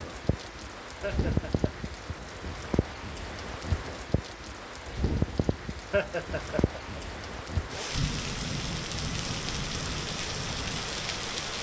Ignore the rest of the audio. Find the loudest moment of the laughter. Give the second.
6 s.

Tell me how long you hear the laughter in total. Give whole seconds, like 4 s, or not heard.
2 s.